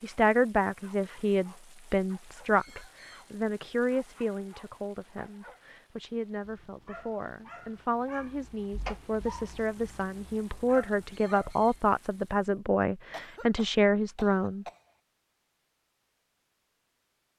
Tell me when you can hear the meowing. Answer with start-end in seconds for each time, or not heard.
8.7-9.4.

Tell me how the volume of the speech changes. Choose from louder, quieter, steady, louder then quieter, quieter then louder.
quieter then louder.